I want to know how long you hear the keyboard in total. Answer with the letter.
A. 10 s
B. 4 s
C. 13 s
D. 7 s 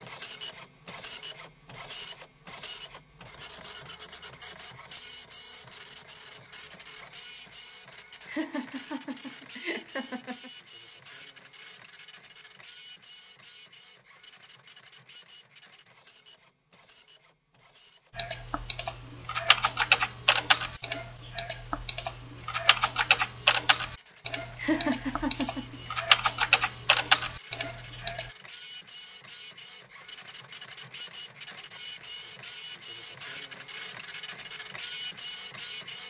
A.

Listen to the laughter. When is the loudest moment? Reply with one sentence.
The volume of the laughter peaks at 25 seconds.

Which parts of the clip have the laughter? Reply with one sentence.
You can hear the laughter from 8.2 to 10.5 s and from 24.6 to 25.8 s.